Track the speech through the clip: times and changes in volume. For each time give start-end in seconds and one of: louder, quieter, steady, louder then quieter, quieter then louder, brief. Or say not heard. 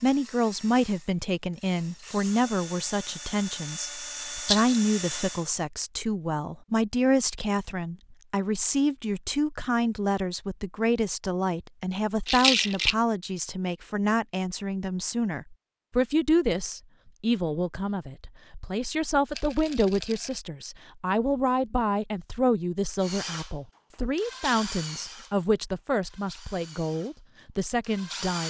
0.0-28.4 steady.